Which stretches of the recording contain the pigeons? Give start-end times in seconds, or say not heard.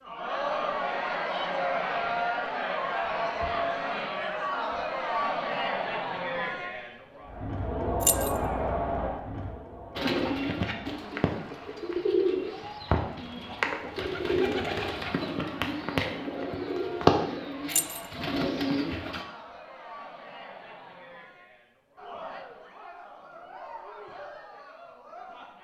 9.9-19.2.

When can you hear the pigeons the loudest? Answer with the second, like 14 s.
17 s.